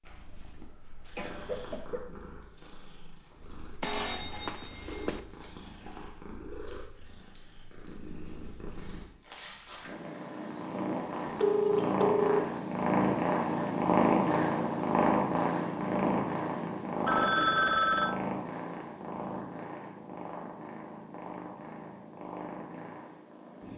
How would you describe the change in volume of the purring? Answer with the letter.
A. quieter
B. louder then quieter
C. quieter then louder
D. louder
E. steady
B.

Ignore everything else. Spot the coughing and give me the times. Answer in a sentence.
You can hear the coughing from 0.2 to 2.0 s.